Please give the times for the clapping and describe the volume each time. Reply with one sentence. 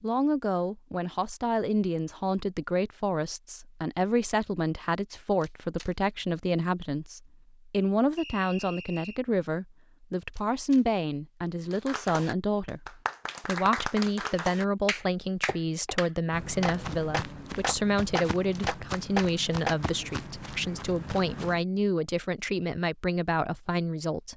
The clapping can be heard from 11.7 to 19.8 s, getting louder.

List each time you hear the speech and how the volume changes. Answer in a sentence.
You can hear the speech from 0.0 to 24.3 s, at a steady volume.